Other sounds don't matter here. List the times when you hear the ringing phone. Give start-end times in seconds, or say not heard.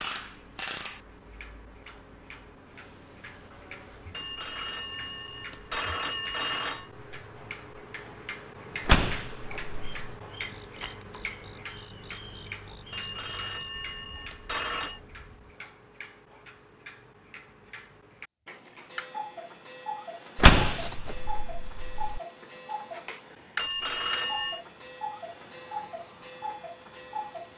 4.1-6.9, 12.9-15.0, 23.6-24.6.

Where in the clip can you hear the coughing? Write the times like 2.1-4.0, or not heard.
not heard.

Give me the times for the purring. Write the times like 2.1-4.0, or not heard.
not heard.